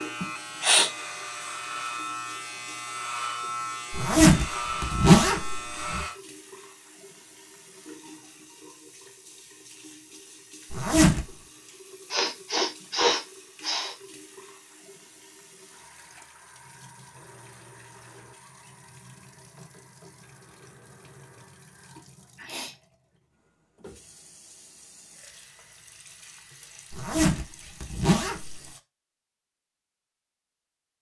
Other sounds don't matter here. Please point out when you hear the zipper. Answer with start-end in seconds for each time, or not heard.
3.9-6.0, 10.7-11.2, 26.9-28.6.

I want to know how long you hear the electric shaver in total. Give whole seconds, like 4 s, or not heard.
6 s.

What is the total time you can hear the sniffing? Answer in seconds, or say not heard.
3 s.